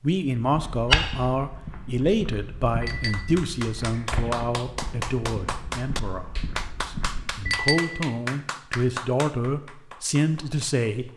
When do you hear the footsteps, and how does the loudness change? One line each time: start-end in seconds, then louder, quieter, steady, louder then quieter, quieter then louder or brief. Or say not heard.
0.5-7.7 quieter.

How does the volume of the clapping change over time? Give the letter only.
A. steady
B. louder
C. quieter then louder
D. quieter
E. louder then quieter
D.